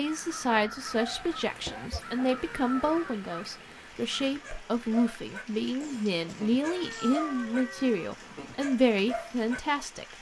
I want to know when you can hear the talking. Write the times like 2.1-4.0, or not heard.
0.0-10.1.